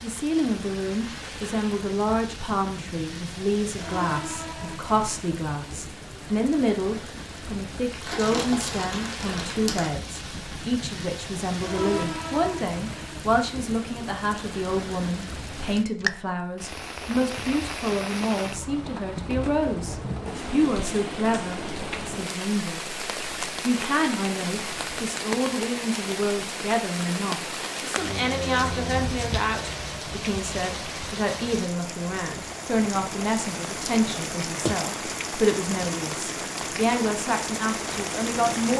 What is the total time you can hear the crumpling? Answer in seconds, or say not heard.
2 s.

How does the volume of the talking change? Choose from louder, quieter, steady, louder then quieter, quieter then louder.
steady.